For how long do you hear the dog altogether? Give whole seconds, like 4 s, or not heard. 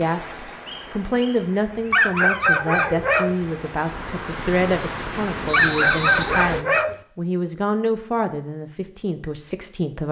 3 s.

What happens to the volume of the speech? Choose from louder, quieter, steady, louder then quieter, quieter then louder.
steady.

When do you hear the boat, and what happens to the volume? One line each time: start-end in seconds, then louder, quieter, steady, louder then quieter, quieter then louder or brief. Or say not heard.
not heard.